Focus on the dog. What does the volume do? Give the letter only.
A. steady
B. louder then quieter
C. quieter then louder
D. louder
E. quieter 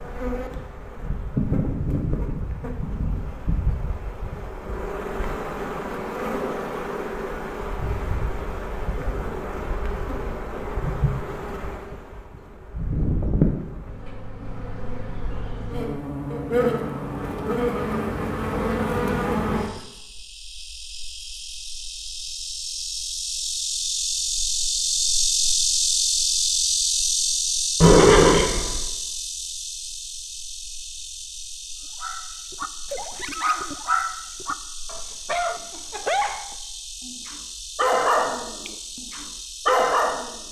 D.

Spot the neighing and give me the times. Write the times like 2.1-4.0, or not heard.
27.8-28.8.